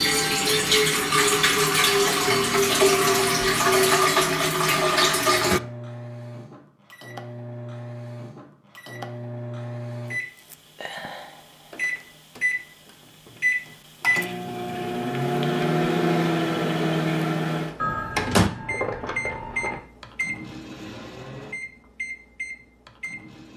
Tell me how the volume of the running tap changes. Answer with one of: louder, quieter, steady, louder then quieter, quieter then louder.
steady.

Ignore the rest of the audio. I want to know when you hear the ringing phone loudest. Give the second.
18 s.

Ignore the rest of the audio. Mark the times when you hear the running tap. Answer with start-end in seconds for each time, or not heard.
0.0-5.6.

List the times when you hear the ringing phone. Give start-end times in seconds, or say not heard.
17.8-19.8.